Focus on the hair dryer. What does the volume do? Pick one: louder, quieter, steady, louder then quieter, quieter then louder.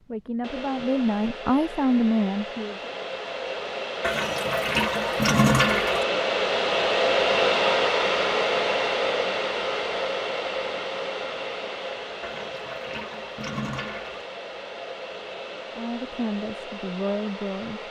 louder then quieter.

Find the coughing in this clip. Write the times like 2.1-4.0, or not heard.
not heard.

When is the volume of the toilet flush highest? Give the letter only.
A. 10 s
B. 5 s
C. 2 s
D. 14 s
B.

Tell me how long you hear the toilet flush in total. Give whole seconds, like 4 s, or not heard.
4 s.